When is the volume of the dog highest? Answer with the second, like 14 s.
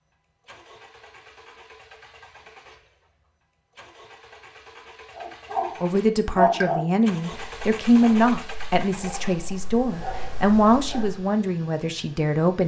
7 s.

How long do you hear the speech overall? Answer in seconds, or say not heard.
7 s.